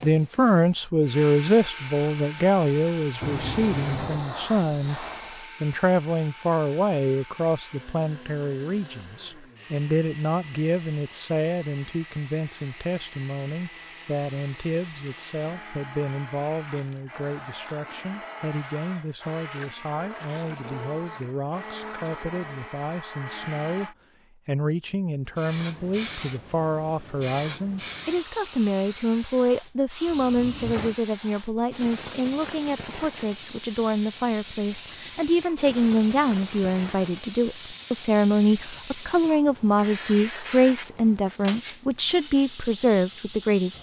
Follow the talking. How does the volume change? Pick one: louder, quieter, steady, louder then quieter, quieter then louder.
quieter then louder.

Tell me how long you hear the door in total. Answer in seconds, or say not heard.
2 s.